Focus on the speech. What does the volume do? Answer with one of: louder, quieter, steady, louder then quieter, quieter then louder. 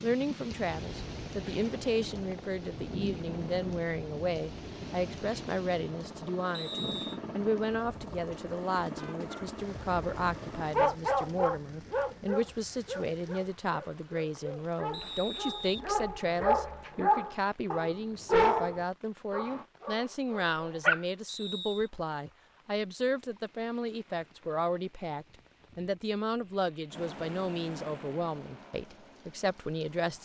steady.